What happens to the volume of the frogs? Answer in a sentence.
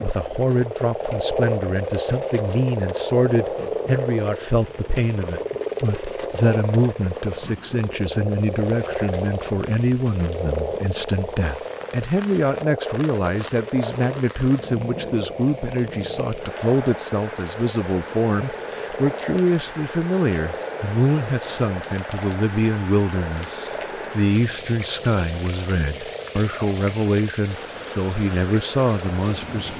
The loudness of the frogs goes down.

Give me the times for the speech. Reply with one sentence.
You can hear the speech from 0.0 to 29.7 s.